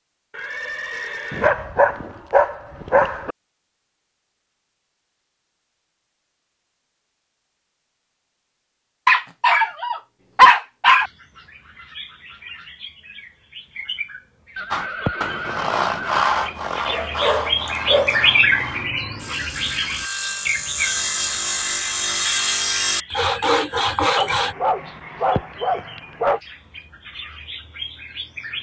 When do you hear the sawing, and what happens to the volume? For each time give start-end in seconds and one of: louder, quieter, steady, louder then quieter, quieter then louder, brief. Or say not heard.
14.7-24.6 quieter then louder.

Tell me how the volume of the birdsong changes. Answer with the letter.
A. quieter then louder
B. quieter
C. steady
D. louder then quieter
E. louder
D.